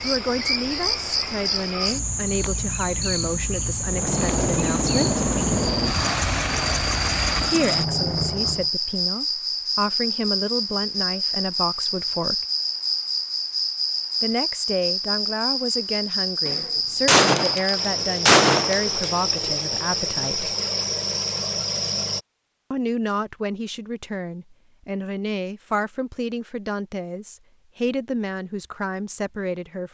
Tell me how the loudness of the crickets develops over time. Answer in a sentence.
The volume of the crickets stays about the same.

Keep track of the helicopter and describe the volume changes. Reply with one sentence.
The volume of the helicopter stays about the same.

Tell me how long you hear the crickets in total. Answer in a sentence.
You can hear the crickets for 22 seconds altogether.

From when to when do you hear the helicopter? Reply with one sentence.
You can hear the helicopter from 3.9 to 8.7 s.